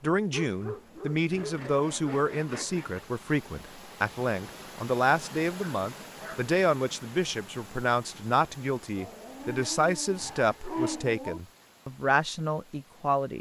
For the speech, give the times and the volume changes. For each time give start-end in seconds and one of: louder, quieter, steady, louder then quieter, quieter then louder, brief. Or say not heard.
0.0-13.3 steady.